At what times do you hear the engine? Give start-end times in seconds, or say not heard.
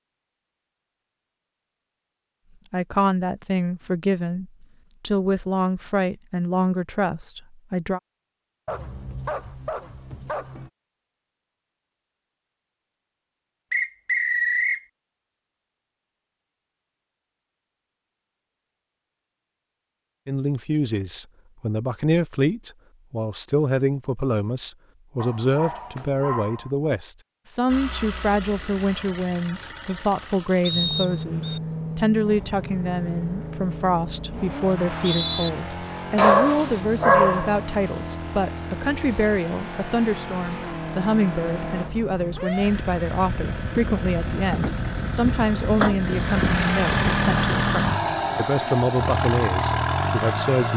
27.6-50.7.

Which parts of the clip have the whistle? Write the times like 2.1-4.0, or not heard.
13.7-14.8, 30.6-31.6, 34.8-35.5.